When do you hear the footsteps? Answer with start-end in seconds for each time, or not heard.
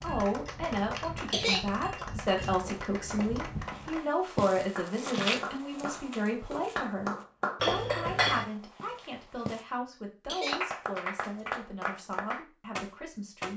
2.6-9.7.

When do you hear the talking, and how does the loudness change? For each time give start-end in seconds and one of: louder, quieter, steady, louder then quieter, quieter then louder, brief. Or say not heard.
0.0-13.5 quieter.